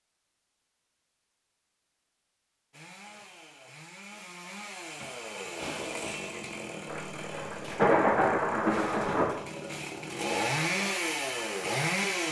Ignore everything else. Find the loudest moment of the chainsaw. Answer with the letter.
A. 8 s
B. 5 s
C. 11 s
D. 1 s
C.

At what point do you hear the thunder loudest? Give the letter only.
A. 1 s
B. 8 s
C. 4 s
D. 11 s
B.